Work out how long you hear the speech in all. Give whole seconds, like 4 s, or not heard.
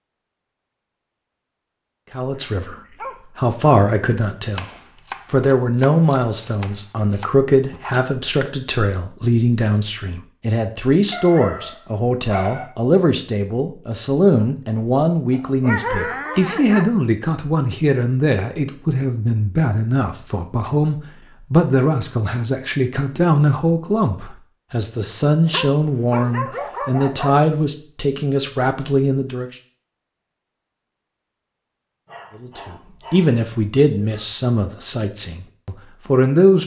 31 s.